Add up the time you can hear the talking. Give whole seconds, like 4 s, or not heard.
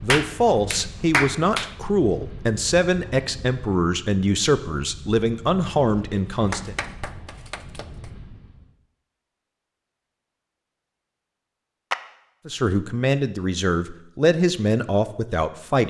10 s.